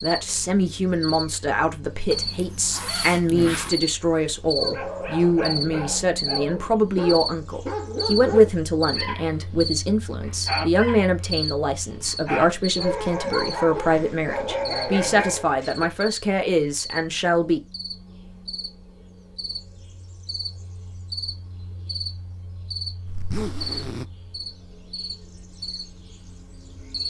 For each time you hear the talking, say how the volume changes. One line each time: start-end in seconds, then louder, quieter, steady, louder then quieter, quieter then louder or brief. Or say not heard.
0.0-17.6 steady.